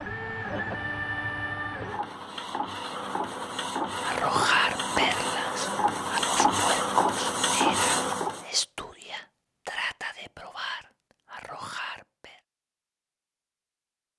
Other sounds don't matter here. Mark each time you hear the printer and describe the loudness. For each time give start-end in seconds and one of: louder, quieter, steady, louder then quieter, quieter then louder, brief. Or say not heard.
0.0-8.4 louder.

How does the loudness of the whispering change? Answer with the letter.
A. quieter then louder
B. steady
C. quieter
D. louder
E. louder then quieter
C.